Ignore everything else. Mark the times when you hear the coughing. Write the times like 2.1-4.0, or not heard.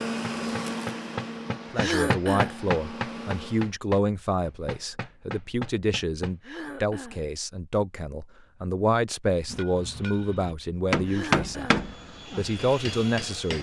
1.8-2.6, 6.4-7.2, 11.1-11.8.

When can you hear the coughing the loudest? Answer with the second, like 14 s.
2 s.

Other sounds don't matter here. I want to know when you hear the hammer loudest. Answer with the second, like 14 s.
11 s.